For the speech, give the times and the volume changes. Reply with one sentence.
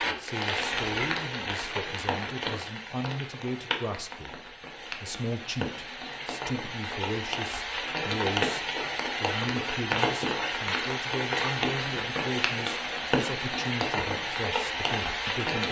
You can hear the speech from 0.0 to 15.6 s, at a steady volume.